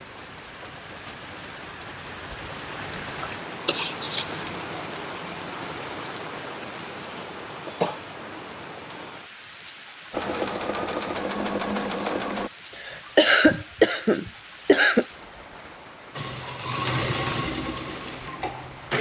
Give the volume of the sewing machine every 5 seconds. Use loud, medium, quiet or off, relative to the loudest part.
off, off, loud, loud.